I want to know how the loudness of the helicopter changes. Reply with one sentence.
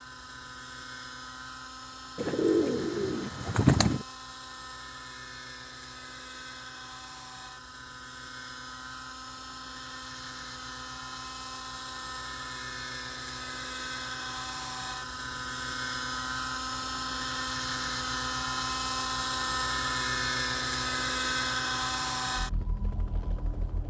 The volume of the helicopter goes up.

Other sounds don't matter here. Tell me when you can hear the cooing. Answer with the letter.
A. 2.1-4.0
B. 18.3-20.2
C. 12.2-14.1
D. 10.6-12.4
A.